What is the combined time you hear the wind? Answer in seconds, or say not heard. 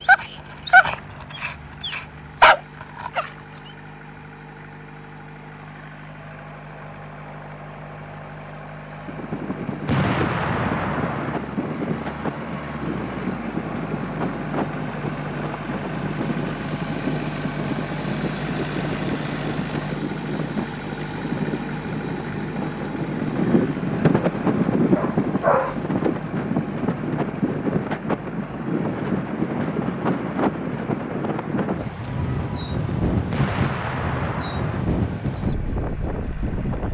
28 s.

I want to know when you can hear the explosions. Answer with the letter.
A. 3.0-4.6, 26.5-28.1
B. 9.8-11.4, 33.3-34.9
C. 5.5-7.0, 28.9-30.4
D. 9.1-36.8
B.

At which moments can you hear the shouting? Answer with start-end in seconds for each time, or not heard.
not heard.